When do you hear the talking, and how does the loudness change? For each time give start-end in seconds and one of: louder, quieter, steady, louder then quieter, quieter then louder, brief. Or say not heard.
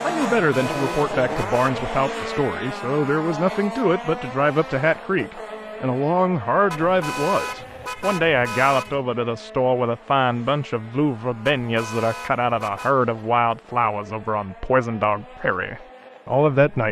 0.0-16.8 steady.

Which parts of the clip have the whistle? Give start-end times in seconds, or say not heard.
not heard.